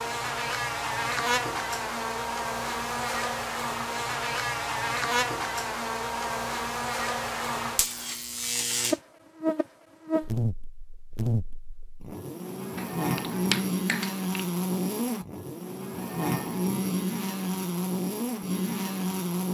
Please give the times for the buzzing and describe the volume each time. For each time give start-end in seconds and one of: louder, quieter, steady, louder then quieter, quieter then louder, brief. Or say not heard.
0.0-19.4 steady.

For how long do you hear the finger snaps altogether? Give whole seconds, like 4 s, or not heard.
2 s.